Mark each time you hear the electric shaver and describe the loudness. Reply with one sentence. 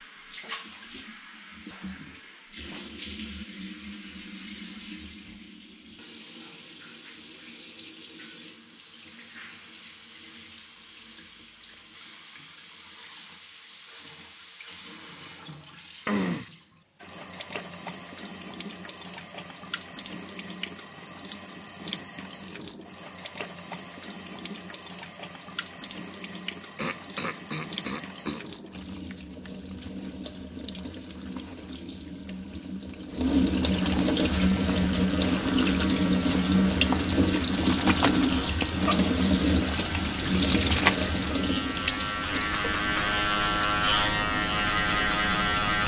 You can hear the electric shaver from 34.3 to 45.8 s, getting louder.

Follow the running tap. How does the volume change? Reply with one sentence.
The loudness of the running tap goes up.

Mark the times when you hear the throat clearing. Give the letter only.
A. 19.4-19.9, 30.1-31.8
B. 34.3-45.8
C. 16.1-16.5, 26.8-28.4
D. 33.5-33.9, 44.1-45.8
C.